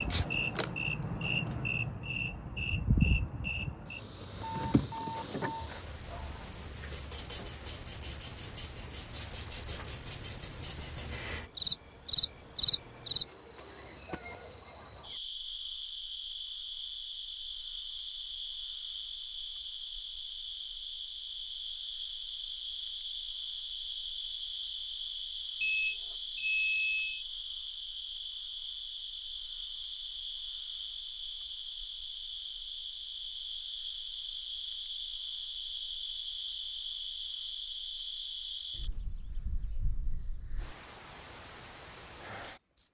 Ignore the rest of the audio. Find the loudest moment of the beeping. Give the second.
27 s.